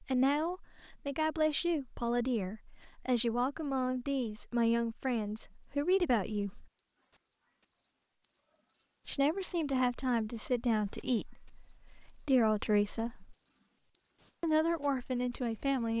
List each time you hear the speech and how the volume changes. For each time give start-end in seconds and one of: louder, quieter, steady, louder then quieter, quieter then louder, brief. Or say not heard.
0.0-6.7 steady
9.1-13.3 quieter then louder
14.4-15.9 brief.